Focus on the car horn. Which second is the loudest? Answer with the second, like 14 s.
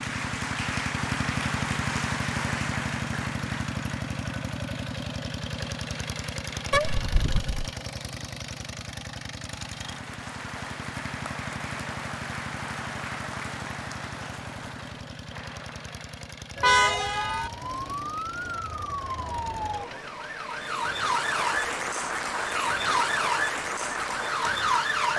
17 s.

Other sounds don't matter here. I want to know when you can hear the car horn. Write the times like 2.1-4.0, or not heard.
6.7-7.7, 16.6-17.5.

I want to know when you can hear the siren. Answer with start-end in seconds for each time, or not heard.
16.6-25.1.